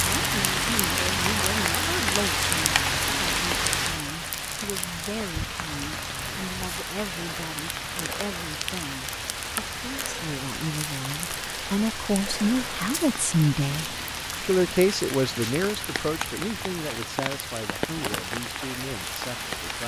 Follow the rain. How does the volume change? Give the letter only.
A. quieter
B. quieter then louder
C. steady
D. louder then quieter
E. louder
A.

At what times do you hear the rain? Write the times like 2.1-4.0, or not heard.
0.0-19.8.